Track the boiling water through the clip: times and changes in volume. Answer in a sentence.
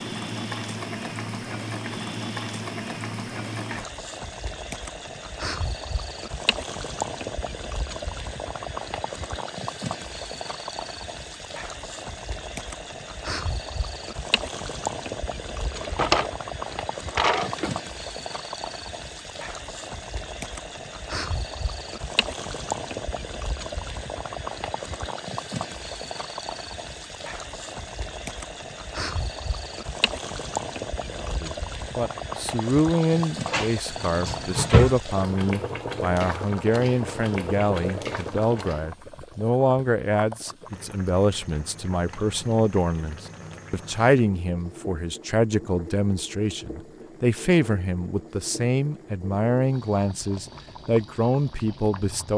The boiling water can be heard from 0.0 to 52.3 s, getting quieter.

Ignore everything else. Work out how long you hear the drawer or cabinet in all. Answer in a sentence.
You can hear the drawer or cabinet for 4 seconds altogether.